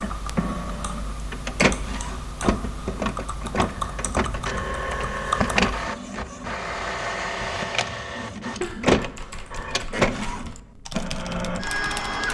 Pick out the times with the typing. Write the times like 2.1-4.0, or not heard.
0.0-5.9, 8.6-12.2.